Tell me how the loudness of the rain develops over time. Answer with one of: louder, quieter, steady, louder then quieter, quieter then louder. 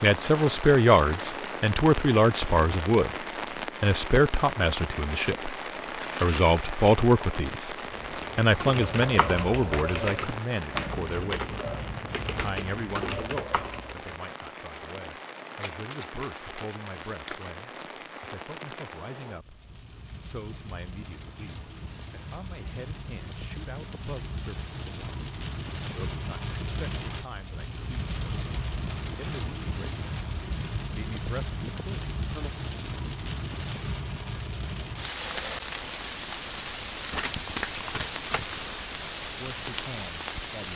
quieter then louder.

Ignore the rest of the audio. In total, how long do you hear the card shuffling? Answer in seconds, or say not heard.
4 s.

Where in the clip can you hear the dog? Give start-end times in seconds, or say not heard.
not heard.